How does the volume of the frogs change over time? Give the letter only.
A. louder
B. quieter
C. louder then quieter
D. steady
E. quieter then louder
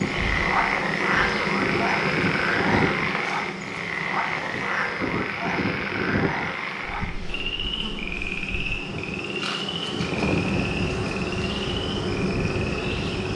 B.